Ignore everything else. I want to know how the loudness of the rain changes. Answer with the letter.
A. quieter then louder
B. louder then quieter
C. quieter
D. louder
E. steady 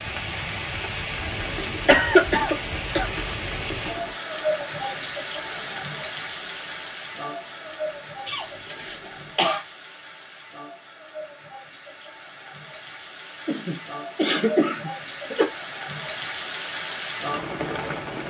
A.